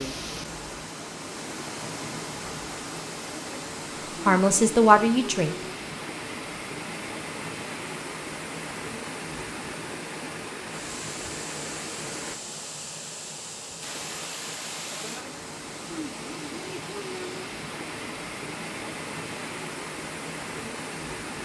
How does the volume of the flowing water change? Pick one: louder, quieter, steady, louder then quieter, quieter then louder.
steady.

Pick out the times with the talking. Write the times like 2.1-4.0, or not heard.
4.1-5.5.